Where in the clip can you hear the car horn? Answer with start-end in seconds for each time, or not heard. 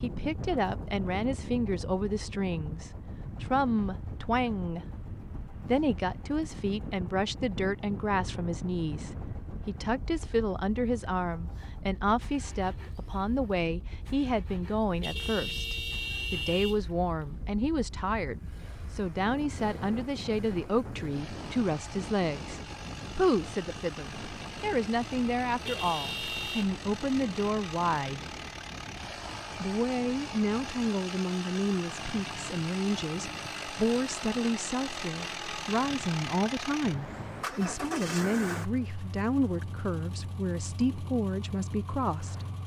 15.0-16.8, 25.6-26.6.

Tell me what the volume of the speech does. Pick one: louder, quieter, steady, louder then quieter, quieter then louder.
steady.